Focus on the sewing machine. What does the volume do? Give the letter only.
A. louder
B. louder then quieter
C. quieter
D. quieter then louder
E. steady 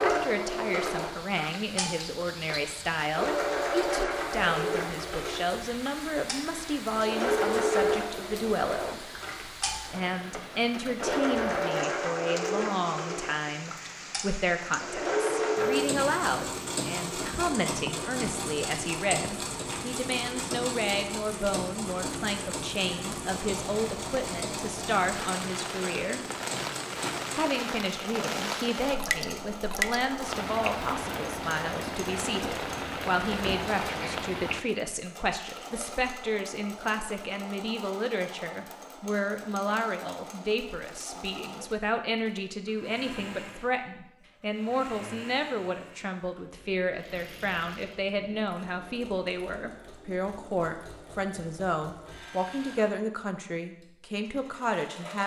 C.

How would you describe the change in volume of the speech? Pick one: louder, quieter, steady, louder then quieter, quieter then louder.
steady.